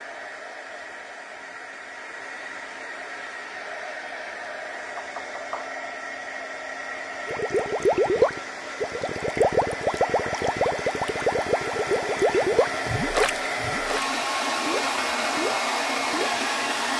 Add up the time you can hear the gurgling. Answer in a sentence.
You can hear the gurgling for 9 seconds altogether.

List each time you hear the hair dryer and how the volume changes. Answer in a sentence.
The hair dryer can be heard from 0.0 to 16.9 s, getting louder.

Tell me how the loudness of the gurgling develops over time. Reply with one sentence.
The loudness of the gurgling goes down.